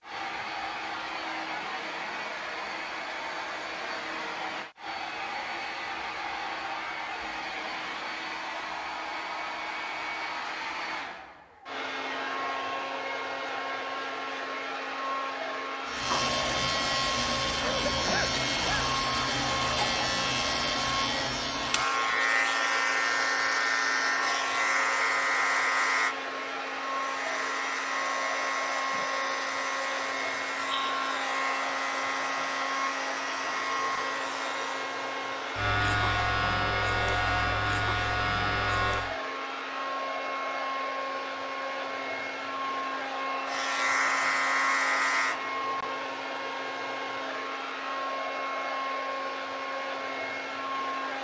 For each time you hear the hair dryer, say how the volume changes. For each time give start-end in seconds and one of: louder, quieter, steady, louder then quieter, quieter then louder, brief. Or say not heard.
0.0-51.2 steady.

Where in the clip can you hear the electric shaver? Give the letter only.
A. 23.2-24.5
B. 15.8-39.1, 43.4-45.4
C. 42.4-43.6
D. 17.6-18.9
B.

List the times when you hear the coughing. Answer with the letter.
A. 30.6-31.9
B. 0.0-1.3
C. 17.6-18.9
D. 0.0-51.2
C.